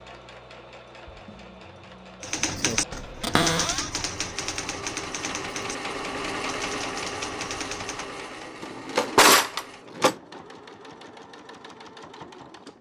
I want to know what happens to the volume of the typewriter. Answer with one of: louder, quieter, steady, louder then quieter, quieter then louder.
quieter.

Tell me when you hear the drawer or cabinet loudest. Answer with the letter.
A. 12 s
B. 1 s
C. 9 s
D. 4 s
C.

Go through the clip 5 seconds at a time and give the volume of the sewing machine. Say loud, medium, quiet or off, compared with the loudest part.
medium, loud, medium.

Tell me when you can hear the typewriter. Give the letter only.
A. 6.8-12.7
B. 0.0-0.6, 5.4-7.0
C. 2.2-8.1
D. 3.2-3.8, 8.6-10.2
C.